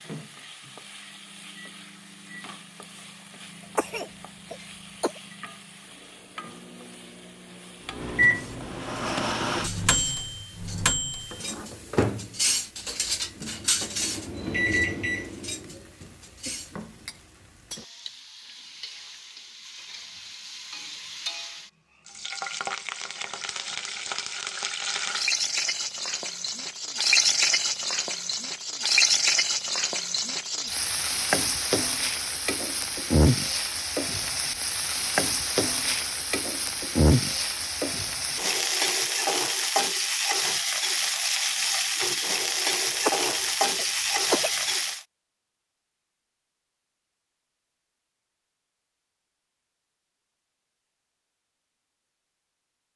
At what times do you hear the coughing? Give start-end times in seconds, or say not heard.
3.8-5.2, 43.0-44.6.